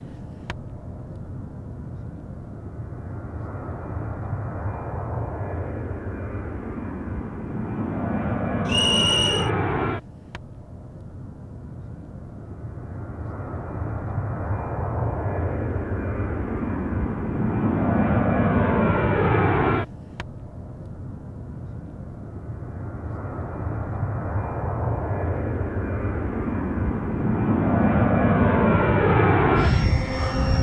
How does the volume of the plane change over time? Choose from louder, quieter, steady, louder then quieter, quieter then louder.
louder.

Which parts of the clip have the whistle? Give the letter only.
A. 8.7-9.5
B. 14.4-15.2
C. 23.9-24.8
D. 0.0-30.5
A.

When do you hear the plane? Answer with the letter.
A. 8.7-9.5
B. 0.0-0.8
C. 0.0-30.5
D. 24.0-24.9
C.